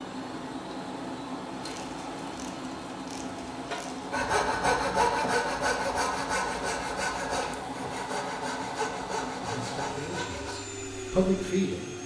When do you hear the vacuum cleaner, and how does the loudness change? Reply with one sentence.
You can hear the vacuum cleaner from 0.0 to 12.0 s, at a steady volume.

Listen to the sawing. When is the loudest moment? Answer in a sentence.
The volume of the sawing peaks at 5 seconds.